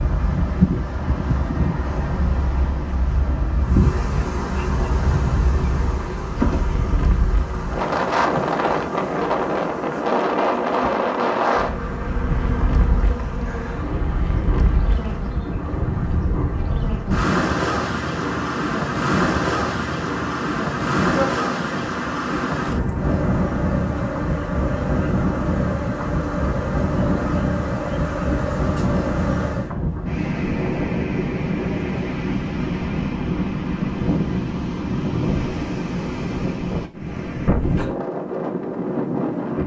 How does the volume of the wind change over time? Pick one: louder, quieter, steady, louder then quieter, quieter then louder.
steady.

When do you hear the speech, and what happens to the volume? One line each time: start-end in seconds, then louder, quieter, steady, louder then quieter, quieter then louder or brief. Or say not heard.
not heard.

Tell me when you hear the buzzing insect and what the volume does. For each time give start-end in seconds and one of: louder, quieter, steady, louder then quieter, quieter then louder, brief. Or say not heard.
3.6-29.8 steady.